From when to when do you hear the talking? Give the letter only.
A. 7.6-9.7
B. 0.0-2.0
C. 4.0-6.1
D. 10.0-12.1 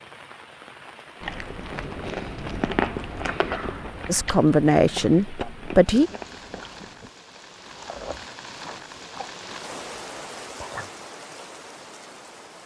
C.